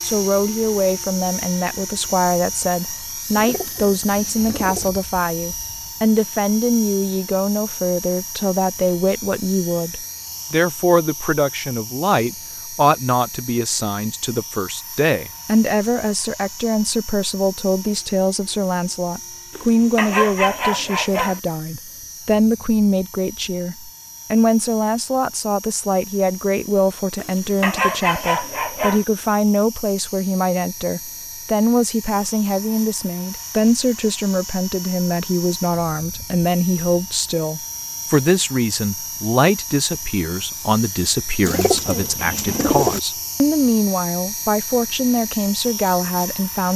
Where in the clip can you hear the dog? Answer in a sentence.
You can hear the dog from 19.6 to 21.4 s and from 27.2 to 29.1 s.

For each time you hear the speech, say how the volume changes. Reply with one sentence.
You can hear the speech from 0.0 to 46.7 s, at a steady volume.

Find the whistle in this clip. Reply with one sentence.
You can't hear the whistle here.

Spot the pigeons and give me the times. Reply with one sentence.
You can hear the pigeons from 3.3 to 4.9 s and from 41.5 to 43.0 s.